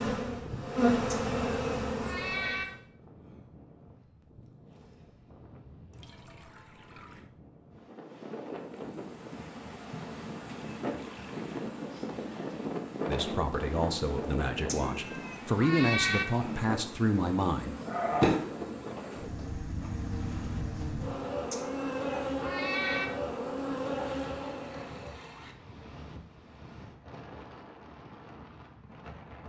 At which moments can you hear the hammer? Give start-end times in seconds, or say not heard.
not heard.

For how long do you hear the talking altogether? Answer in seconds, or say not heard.
5 s.